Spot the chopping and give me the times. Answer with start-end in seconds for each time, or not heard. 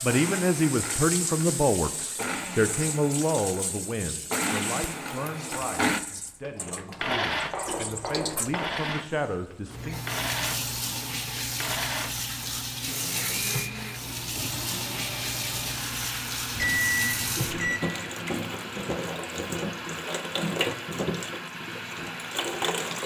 7.3-8.8.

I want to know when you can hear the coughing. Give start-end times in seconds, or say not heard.
not heard.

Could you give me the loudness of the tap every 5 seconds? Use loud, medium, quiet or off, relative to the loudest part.
medium, medium, loud, loud, loud.